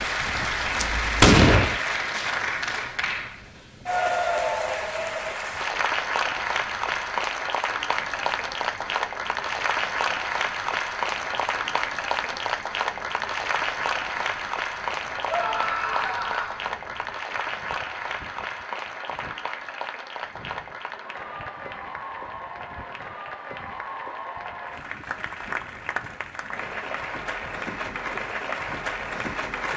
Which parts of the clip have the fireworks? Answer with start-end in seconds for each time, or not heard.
0.0-1.8.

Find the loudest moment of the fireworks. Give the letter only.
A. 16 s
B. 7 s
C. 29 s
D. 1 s
D.